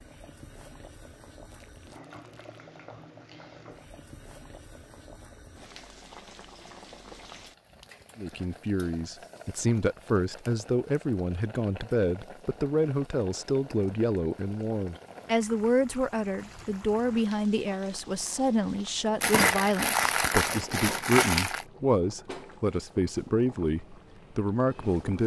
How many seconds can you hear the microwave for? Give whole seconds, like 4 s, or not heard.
not heard.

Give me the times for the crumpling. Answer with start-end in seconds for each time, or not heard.
1.5-2.6, 19.2-21.6.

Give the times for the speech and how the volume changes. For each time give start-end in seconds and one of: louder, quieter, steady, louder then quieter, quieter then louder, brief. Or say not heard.
8.2-25.2 steady.